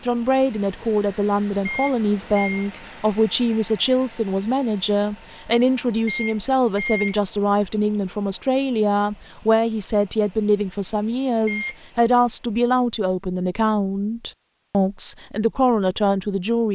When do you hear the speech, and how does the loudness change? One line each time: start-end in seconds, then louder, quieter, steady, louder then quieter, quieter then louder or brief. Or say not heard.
0.0-16.6 steady.